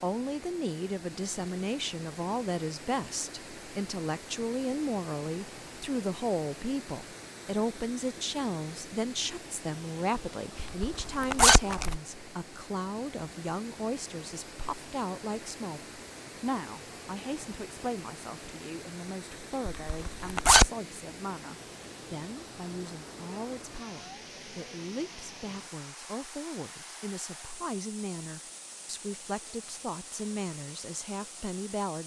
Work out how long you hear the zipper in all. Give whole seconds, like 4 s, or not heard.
2 s.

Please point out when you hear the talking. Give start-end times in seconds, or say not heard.
0.0-32.0.